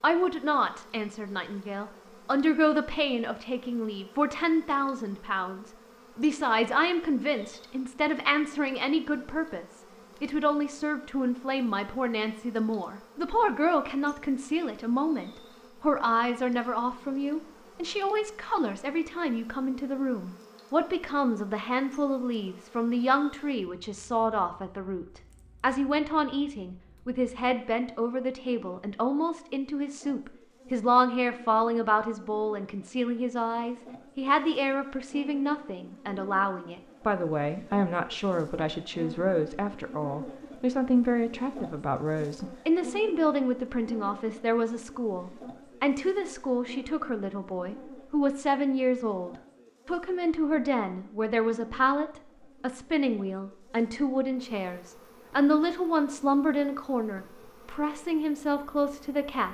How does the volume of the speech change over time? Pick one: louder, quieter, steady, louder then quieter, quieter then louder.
steady.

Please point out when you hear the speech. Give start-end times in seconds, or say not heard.
0.0-59.5.